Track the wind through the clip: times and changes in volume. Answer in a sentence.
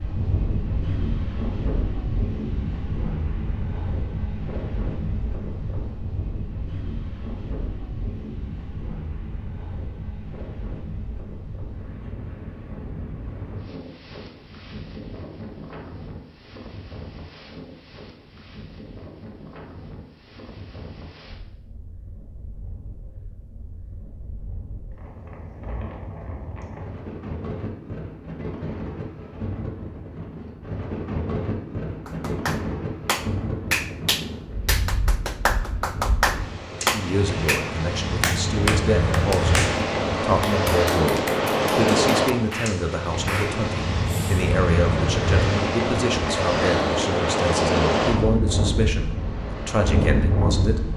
The wind can be heard from 0.0 to 50.9 s, getting quieter then louder.